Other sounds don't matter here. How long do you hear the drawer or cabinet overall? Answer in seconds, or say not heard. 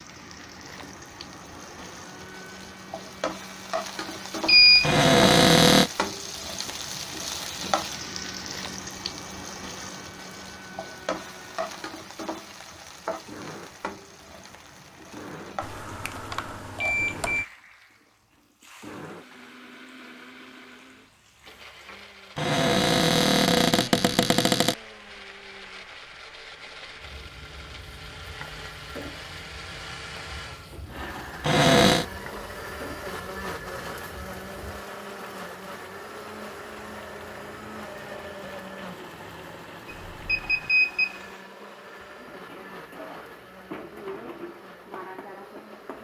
4 s.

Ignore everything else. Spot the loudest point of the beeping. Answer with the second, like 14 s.
5 s.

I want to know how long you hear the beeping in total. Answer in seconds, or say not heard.
4 s.